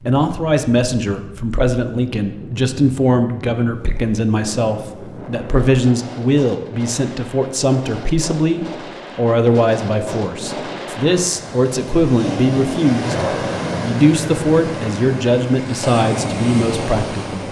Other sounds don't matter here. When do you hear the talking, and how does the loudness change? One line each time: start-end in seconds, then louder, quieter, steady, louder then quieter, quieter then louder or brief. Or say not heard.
0.1-17.4 steady.